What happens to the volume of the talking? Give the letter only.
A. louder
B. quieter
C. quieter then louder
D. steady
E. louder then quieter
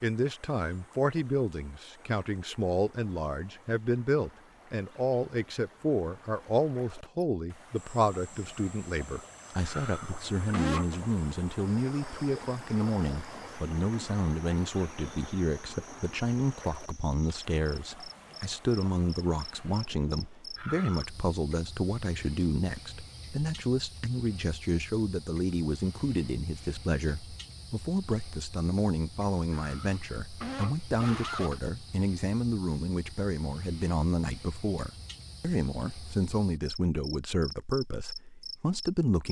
D.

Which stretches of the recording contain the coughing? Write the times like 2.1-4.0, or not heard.
9.6-10.9, 20.6-21.2, 29.5-31.6.